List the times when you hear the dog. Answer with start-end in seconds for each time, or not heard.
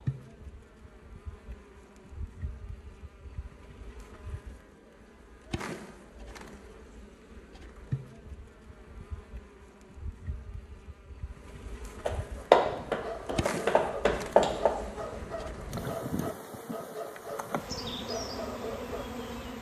12.3-19.1.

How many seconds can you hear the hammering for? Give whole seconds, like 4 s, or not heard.
3 s.